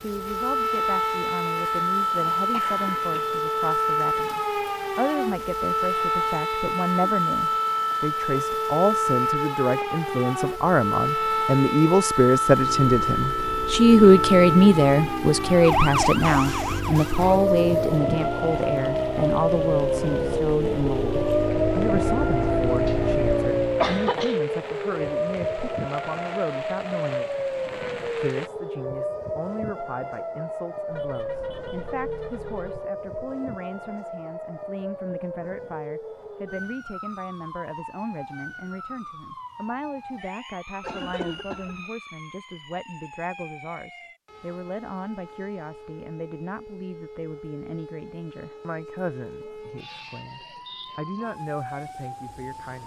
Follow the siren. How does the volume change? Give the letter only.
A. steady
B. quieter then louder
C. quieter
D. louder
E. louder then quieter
C.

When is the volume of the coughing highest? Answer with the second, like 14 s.
24 s.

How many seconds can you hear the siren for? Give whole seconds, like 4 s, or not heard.
53 s.